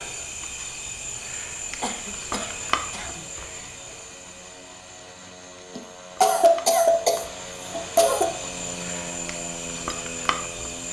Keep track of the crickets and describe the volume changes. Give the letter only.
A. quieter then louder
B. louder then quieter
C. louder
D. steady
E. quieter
A.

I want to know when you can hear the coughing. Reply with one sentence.
The coughing can be heard from 1.8 to 3.2 s and from 5.8 to 8.3 s.